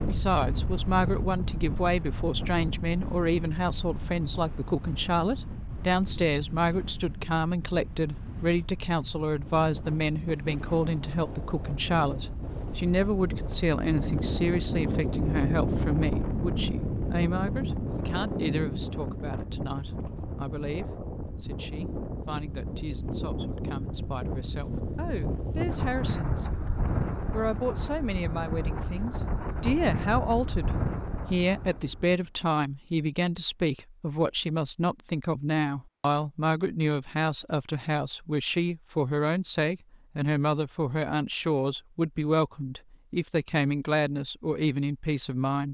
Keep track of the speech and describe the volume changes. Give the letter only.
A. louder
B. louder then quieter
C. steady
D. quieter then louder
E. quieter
D.